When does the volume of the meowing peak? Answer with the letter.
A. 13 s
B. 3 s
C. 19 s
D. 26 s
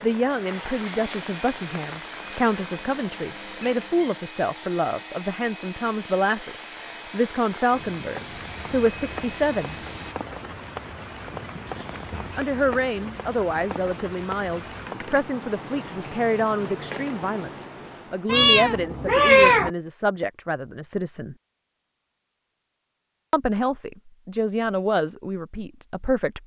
C.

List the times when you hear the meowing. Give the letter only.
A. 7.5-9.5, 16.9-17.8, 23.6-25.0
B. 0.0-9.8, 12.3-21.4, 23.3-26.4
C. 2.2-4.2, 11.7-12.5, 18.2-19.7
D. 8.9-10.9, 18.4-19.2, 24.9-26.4
C.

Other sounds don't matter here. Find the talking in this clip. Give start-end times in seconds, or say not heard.
0.0-9.8, 12.3-21.4, 23.3-26.4.